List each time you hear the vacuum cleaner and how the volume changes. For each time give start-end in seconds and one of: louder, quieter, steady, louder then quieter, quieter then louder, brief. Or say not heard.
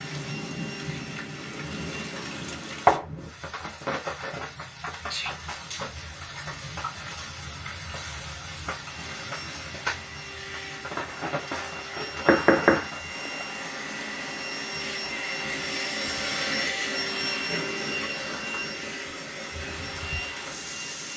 0.0-2.4 brief
8.8-21.1 louder then quieter.